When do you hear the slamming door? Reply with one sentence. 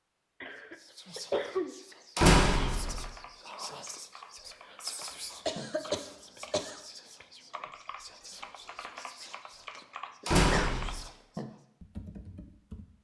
The slamming door can be heard from 2.1 to 3.0 s and from 10.2 to 10.9 s.